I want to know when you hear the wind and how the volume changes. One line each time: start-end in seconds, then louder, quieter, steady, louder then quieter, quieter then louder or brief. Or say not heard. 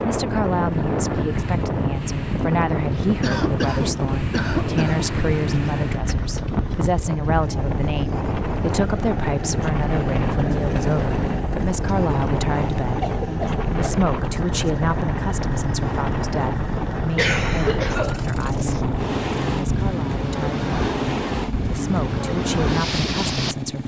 0.0-23.6 steady.